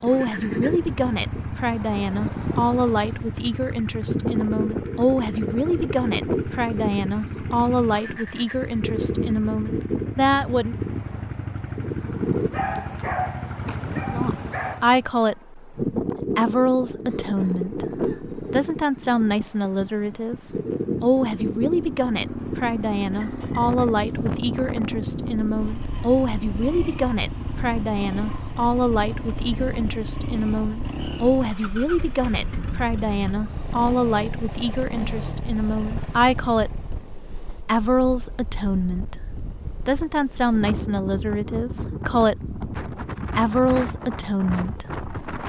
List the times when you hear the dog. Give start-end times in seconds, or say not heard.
12.5-14.8.